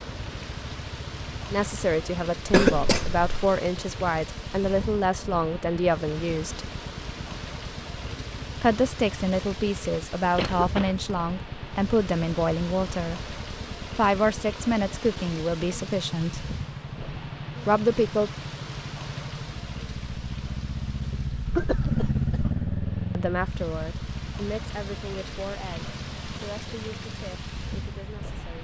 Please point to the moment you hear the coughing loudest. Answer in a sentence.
The volume of the coughing peaks at 3 seconds.